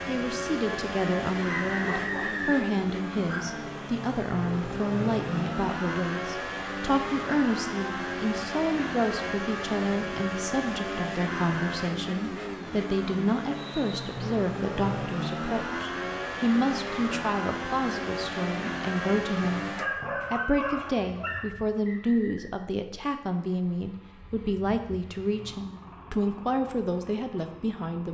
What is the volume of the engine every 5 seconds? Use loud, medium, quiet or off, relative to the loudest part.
loud, loud, loud, loud, quiet, quiet.